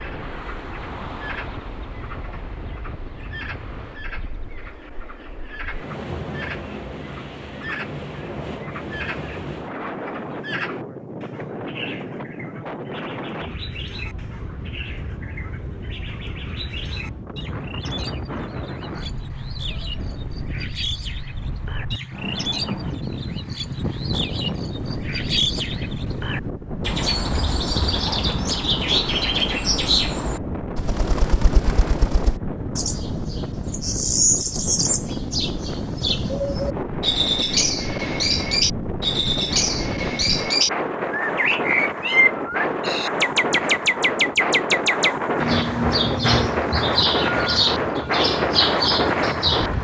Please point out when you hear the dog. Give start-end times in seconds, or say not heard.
not heard.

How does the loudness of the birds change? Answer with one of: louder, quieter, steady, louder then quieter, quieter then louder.
louder.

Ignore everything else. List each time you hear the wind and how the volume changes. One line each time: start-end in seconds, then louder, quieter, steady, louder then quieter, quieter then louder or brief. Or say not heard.
0.0-49.7 louder.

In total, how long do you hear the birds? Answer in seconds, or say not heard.
50 s.